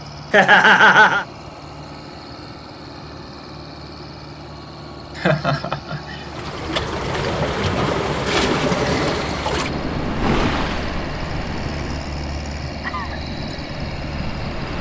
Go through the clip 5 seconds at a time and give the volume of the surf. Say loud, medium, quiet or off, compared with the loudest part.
off, loud, medium.